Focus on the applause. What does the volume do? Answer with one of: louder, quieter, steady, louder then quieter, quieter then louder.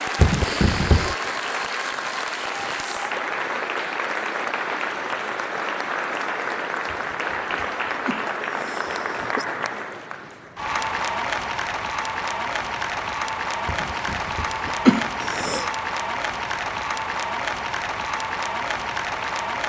steady.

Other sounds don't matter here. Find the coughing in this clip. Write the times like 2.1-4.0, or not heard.
0.1-1.1, 6.8-9.4, 13.7-15.7.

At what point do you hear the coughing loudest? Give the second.
15 s.